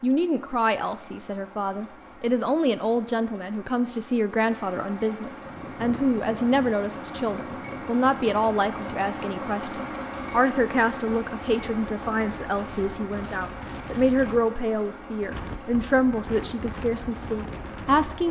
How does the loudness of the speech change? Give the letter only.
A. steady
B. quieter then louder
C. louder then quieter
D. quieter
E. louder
A.